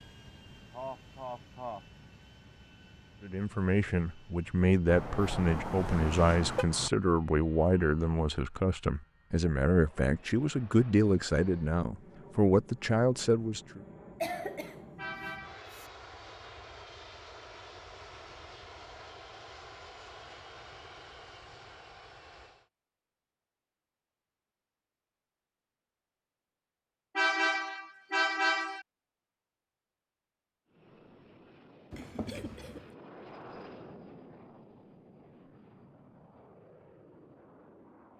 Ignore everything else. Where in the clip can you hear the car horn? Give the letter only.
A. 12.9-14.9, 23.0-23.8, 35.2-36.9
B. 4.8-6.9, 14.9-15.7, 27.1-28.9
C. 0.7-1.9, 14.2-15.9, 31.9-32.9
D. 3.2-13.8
B.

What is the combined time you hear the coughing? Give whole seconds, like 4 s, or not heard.
4 s.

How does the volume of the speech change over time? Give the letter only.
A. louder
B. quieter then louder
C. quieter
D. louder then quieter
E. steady
E.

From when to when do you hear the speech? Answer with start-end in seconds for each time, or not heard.
3.2-13.8.